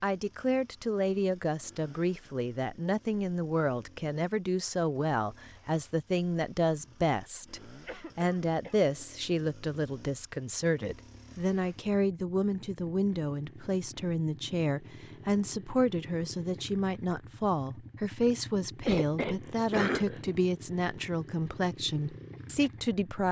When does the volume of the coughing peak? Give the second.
20 s.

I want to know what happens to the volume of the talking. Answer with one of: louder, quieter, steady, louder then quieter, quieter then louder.
steady.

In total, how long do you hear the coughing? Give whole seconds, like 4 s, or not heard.
3 s.